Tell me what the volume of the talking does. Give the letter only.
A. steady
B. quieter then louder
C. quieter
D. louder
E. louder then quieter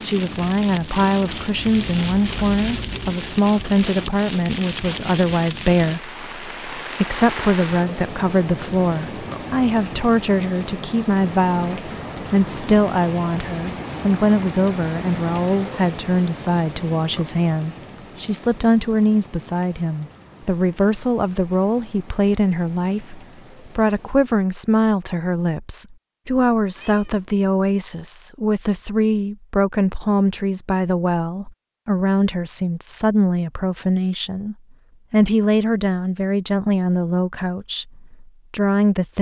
A.